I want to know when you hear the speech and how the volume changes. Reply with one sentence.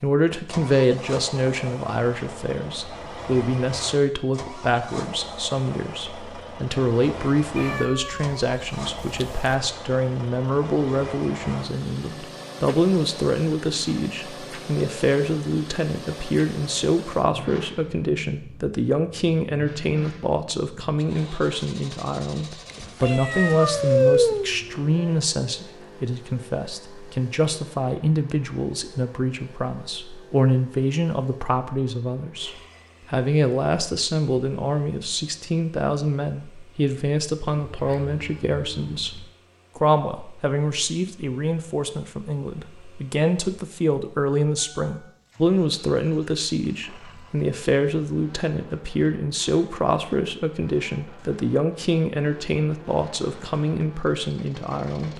The speech can be heard from 0.0 to 55.1 s, at a steady volume.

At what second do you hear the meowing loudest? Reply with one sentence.
The loudest moment of the meowing is at 24 seconds.